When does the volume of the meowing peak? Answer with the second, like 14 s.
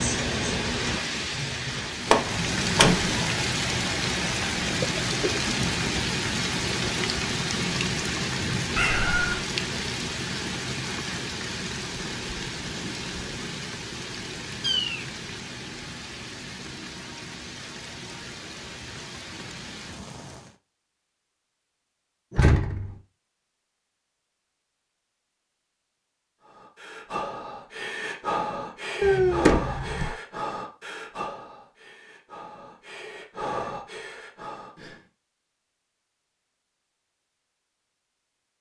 29 s.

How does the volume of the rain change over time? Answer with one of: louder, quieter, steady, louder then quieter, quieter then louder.
quieter.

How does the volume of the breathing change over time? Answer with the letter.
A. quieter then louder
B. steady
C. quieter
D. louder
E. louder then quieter
A.